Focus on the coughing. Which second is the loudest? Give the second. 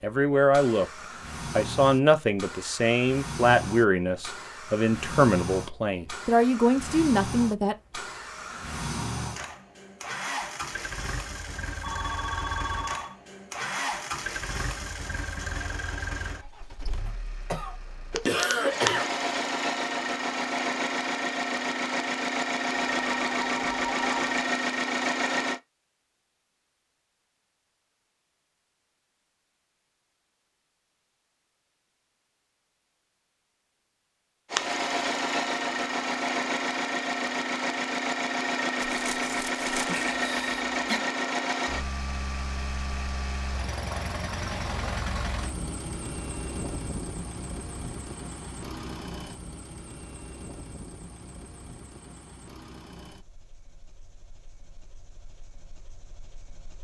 19 s.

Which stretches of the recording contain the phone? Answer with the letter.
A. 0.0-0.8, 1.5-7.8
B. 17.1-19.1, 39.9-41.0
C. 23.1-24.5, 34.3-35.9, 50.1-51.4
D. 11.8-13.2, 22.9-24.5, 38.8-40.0
D.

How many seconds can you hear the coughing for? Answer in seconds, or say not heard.
3 s.